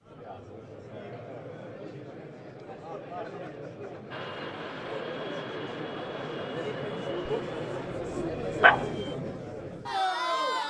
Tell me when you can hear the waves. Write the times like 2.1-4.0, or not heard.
not heard.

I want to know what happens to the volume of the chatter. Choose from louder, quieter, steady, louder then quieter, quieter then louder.
louder.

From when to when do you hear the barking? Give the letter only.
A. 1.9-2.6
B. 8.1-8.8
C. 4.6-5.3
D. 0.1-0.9
B.